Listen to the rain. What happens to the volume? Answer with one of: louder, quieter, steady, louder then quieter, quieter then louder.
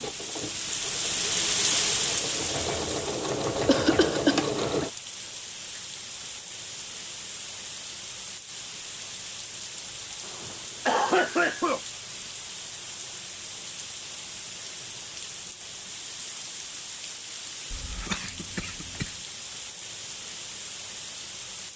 quieter.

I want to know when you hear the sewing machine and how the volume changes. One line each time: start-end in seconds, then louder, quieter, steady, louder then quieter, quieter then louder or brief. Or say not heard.
0.0-4.9 louder.